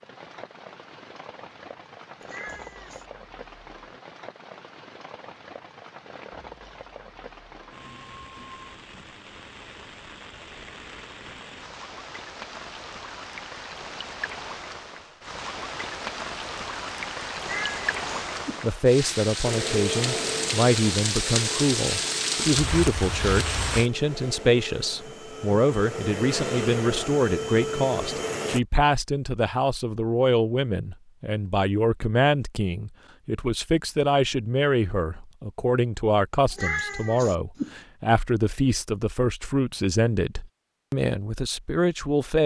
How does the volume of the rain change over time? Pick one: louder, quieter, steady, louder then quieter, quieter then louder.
louder.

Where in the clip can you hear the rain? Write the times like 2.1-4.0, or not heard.
0.0-23.9.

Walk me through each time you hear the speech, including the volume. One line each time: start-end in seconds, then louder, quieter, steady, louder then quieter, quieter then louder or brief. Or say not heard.
18.6-42.4 steady.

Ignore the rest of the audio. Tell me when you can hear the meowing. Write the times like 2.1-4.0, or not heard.
2.2-3.0, 17.4-18.7, 36.5-37.8.